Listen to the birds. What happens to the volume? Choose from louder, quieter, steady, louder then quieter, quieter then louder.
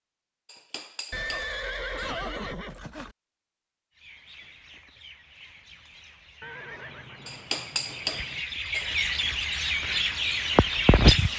louder.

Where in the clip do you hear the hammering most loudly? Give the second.
8 s.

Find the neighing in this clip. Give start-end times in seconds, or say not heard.
1.1-3.1, 6.4-8.4.